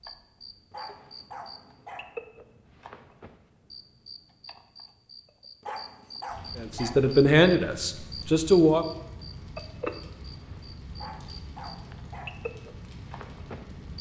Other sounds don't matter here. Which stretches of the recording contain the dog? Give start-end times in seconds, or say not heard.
0.7-2.1, 5.6-7.0, 10.9-12.4.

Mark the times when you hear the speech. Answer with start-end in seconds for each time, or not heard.
6.5-8.8.